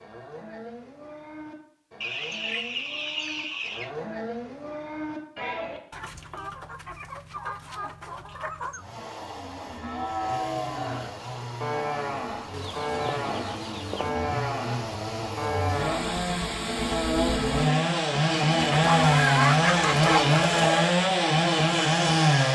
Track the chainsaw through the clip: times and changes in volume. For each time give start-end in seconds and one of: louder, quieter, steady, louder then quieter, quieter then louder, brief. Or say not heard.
8.7-22.5 louder.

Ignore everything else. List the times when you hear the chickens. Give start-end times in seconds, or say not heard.
2.0-3.9, 5.9-8.8, 12.5-14.2, 18.6-20.9.